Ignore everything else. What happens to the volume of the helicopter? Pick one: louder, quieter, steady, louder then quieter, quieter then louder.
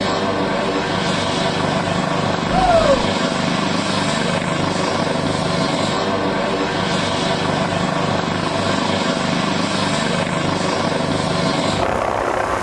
steady.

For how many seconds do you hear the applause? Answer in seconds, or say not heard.
not heard.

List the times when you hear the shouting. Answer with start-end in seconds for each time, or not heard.
2.5-3.0.